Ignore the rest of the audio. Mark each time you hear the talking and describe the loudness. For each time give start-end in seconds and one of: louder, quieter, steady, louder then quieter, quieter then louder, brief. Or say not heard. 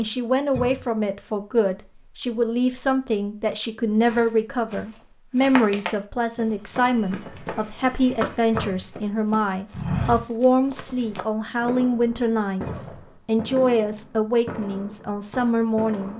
0.0-16.1 steady.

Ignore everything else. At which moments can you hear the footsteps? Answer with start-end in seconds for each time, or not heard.
4.0-11.2.